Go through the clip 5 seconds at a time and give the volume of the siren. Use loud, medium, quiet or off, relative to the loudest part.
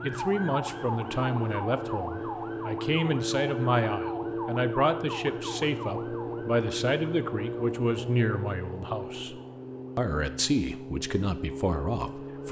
loud, loud, medium.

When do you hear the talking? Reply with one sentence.
The talking can be heard from 0.0 to 12.4 s.